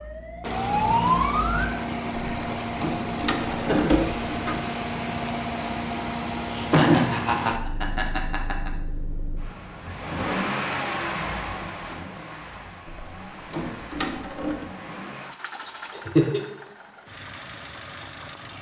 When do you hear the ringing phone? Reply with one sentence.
The ringing phone can't be heard in this clip.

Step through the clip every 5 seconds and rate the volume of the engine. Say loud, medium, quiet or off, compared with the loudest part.
loud, loud, loud, medium.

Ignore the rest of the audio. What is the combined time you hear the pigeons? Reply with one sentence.
The pigeons can't be heard in this clip.